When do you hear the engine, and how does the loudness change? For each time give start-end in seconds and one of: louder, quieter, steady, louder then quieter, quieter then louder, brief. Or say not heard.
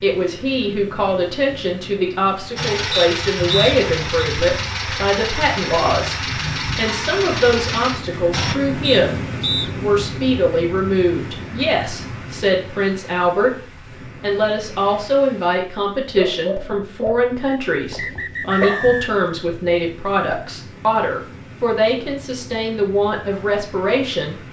2.5-8.6 steady.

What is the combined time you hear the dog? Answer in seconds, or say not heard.
3 s.